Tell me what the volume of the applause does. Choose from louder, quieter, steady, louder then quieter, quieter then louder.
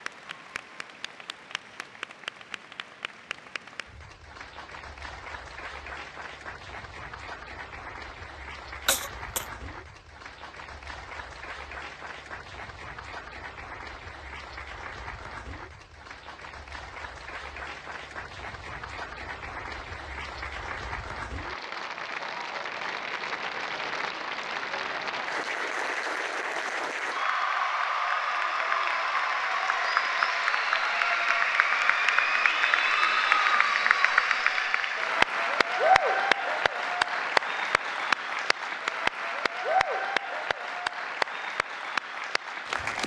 louder.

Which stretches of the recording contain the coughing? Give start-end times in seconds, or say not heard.
8.8-9.4.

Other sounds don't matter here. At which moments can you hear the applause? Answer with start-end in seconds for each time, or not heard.
0.0-43.0.